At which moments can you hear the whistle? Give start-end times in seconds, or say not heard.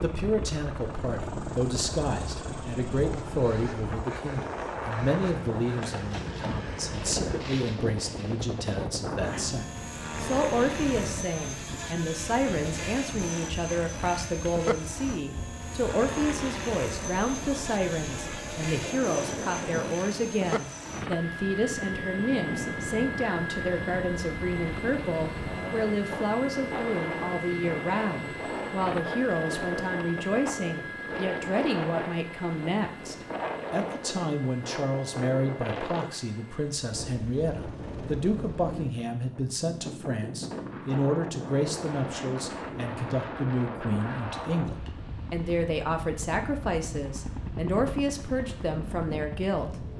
not heard.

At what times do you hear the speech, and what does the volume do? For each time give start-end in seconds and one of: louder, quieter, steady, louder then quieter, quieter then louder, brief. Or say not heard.
0.0-49.8 steady.